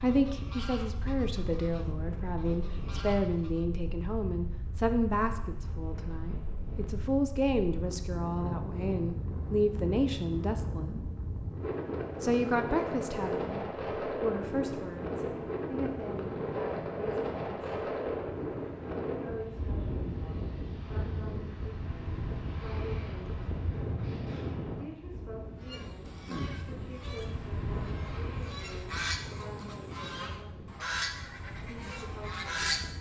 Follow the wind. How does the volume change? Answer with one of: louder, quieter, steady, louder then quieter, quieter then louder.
louder then quieter.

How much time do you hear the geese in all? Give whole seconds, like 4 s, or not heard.
11 s.